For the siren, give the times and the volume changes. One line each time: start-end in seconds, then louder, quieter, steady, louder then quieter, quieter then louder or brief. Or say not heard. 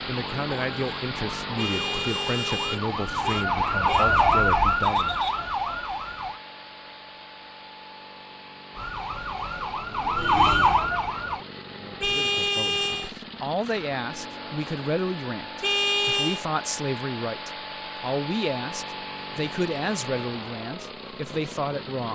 0.0-6.4 louder then quieter
8.8-11.4 brief.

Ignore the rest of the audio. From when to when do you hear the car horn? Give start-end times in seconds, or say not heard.
1.6-4.0, 12.0-13.1, 15.6-16.4.